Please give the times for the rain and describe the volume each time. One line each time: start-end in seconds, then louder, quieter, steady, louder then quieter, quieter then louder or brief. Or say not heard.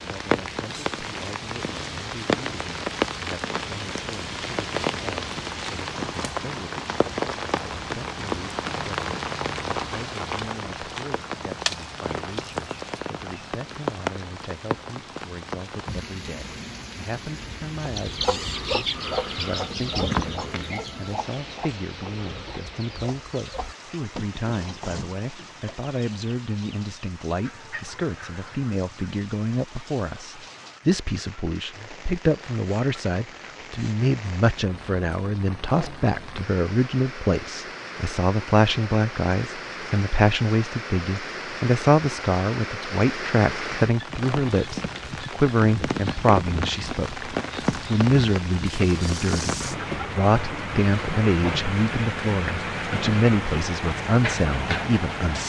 0.0-55.4 quieter then louder.